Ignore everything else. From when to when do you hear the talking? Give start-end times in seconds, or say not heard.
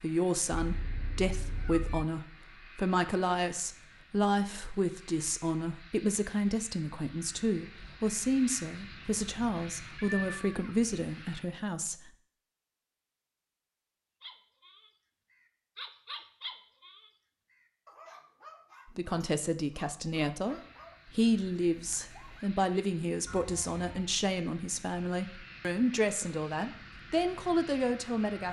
0.0-12.1, 18.9-28.4.